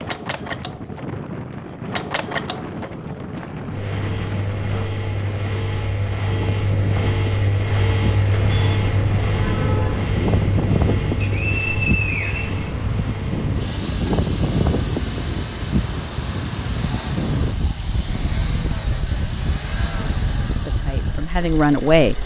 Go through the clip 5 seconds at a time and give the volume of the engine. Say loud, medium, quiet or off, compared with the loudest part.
medium, loud, medium, medium, medium.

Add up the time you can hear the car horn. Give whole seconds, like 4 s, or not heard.
2 s.